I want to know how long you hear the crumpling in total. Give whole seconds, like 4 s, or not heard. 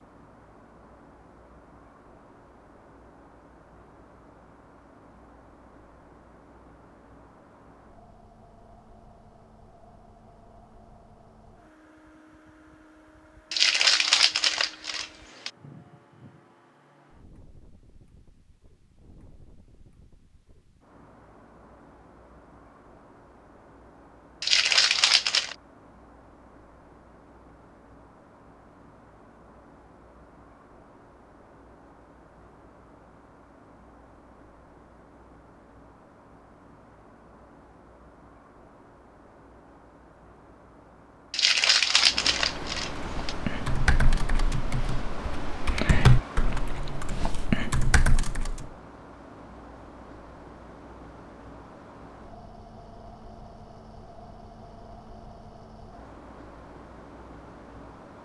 5 s.